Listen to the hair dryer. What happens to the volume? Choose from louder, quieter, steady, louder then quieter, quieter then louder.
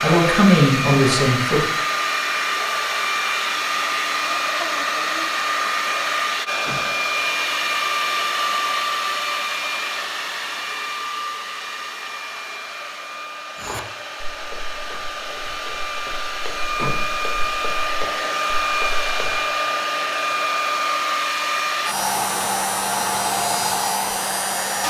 quieter then louder.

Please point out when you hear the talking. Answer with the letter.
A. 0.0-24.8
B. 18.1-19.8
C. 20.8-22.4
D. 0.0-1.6
D.